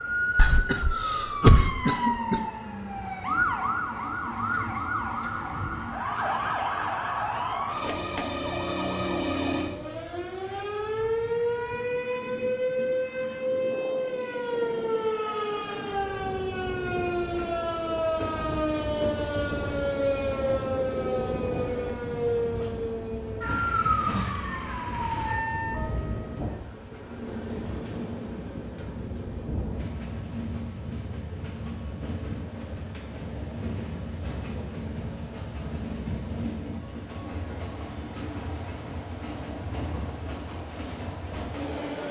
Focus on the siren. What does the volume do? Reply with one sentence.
The volume of the siren stays about the same.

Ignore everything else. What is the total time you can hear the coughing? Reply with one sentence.
The coughing can be heard for 2 seconds in total.